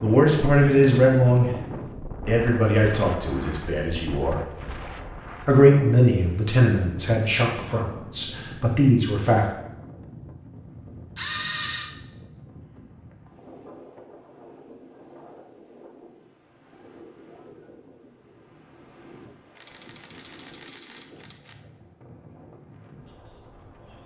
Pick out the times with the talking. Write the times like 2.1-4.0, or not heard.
0.0-1.5, 2.2-4.4, 5.5-9.4.